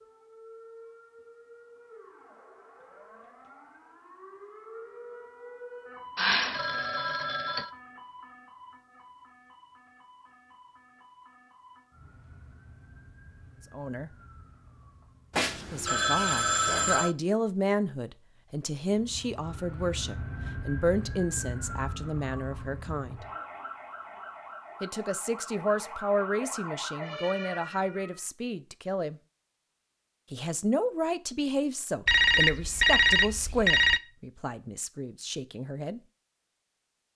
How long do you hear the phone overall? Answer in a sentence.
You can hear the phone for 5 seconds altogether.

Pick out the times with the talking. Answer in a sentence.
You can hear the talking from 13.7 to 14.1 s, from 15.6 to 23.2 s, from 24.8 to 29.2 s and from 30.3 to 36.0 s.